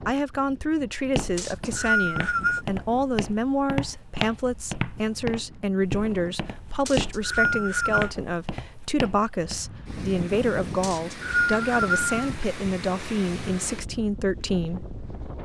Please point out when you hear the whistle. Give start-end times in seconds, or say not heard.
1.4-2.6, 6.8-8.1, 10.8-12.2.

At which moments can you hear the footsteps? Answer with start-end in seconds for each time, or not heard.
1.0-9.6.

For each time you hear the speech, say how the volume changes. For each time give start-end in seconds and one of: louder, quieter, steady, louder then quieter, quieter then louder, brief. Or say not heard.
0.1-14.8 steady.